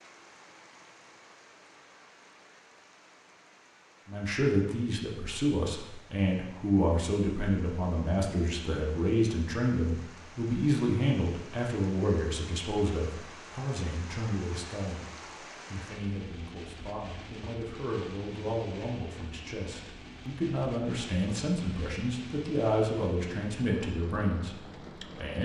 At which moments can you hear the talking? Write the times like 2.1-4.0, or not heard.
4.0-25.4.